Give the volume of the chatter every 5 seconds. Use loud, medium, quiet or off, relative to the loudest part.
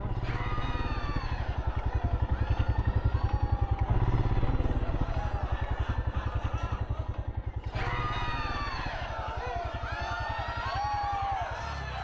medium, medium, loud.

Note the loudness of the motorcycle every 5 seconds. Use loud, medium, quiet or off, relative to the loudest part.
loud, medium, medium.